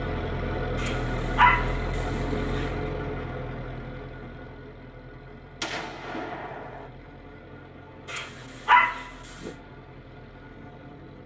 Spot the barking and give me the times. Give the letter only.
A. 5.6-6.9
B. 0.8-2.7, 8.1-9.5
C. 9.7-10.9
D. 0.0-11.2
B.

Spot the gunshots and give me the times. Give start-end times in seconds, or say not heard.
5.6-6.9.